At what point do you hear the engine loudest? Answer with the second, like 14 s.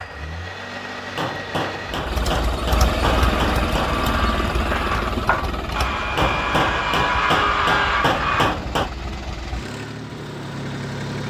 3 s.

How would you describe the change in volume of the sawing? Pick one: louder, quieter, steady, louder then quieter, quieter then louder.
louder.